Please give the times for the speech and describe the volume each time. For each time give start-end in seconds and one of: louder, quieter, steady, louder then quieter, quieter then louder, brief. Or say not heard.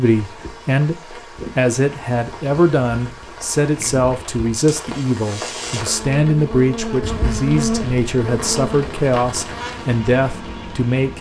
0.0-11.1 steady.